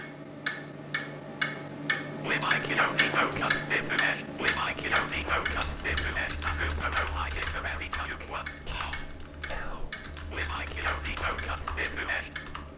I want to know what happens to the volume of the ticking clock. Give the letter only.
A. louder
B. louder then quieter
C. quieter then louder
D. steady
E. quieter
E.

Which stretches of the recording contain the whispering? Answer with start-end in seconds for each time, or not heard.
2.2-12.5.